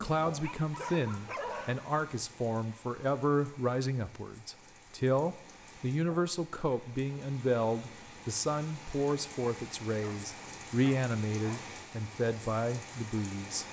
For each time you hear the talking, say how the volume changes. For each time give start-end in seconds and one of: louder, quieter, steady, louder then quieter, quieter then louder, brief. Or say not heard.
0.0-13.6 steady.